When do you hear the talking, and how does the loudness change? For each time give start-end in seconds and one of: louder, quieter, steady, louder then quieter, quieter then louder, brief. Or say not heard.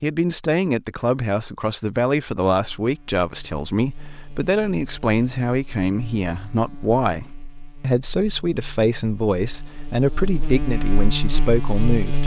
0.0-12.2 steady.